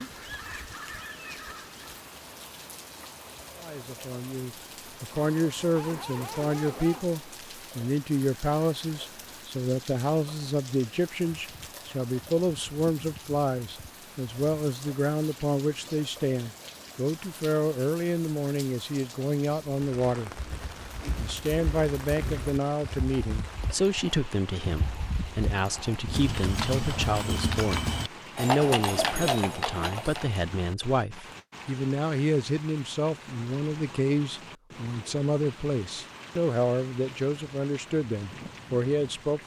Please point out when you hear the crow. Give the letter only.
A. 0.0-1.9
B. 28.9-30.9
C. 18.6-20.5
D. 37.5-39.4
A.